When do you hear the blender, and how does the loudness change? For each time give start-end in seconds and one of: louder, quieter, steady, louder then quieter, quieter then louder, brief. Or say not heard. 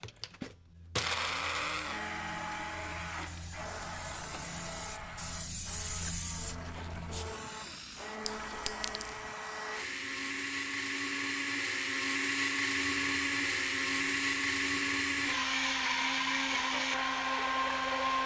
0.0-18.2 quieter then louder.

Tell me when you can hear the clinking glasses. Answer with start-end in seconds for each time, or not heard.
8.2-9.2.